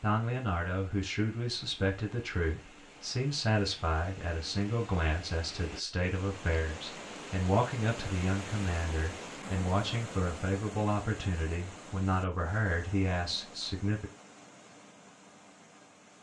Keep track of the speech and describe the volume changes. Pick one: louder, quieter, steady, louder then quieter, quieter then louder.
steady.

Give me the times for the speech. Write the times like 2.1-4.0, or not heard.
0.0-14.1.